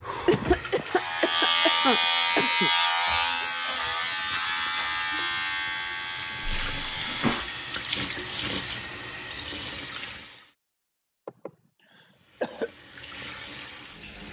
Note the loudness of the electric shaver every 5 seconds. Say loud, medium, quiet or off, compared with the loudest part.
loud, medium, off.